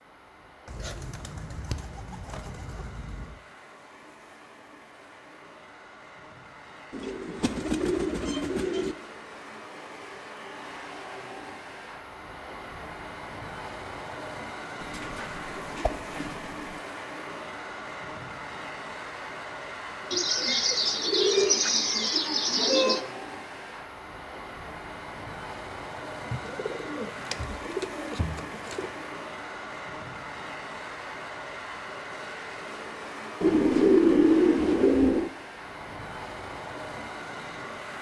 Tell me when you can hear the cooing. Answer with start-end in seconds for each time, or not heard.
0.7-3.4, 6.9-8.9, 14.8-16.8, 20.1-23.1, 26.3-29.1, 33.4-35.4.